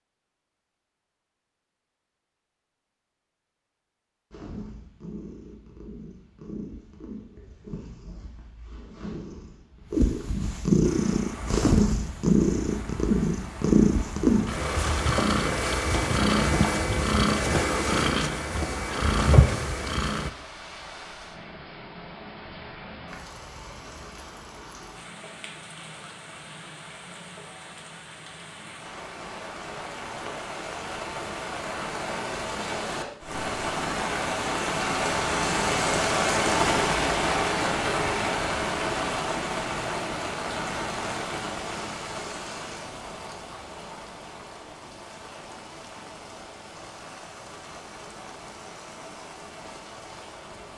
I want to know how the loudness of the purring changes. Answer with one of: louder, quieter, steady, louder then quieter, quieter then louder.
louder.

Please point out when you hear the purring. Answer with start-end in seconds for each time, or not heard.
4.3-20.3.